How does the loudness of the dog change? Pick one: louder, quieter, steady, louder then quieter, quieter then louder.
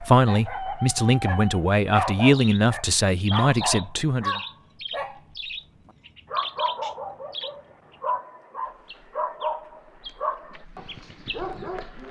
quieter.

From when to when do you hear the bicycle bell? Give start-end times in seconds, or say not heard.
not heard.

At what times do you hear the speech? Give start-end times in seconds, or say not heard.
0.0-4.4.